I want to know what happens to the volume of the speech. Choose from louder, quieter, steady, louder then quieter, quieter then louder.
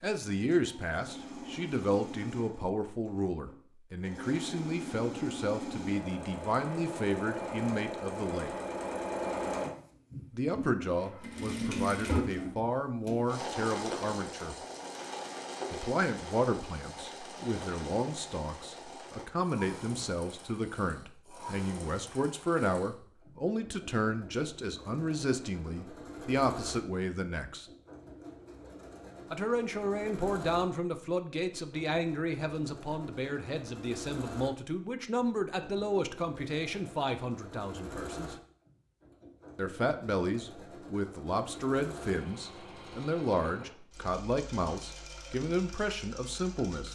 steady.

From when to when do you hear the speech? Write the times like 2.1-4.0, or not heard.
0.0-8.5, 10.3-14.6, 15.7-27.6, 29.3-38.4, 39.5-46.9.